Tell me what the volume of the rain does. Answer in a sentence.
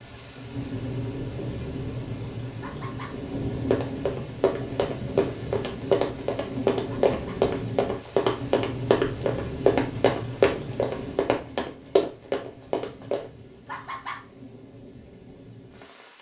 The volume of the rain goes down.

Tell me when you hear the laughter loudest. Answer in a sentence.
The volume of the laughter peaks at 14 seconds.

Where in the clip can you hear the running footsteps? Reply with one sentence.
The running footsteps can be heard from 3.6 to 13.2 s.